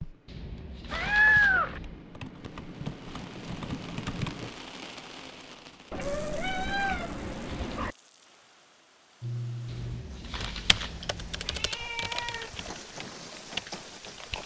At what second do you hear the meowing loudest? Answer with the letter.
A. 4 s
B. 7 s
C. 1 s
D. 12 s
C.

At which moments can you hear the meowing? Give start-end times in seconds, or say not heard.
0.9-1.8, 5.9-8.0, 11.0-12.6.